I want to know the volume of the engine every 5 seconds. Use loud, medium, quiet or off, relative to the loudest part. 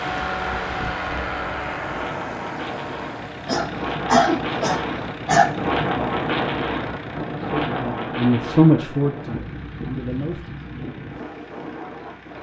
loud, medium, quiet.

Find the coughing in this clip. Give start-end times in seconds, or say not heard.
3.5-5.5.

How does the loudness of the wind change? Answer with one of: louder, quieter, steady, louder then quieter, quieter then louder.
louder then quieter.